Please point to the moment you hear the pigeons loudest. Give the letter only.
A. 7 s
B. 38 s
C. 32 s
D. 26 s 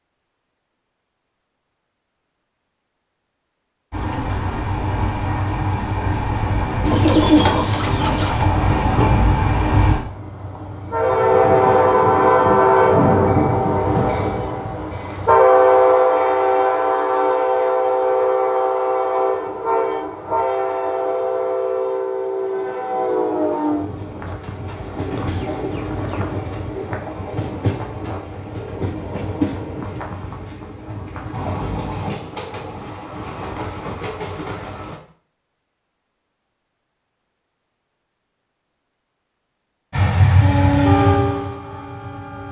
A.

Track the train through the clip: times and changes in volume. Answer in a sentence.
You can hear the train from 3.9 to 35.0 s, getting louder then quieter; and briefly from 39.9 to 42.4 s.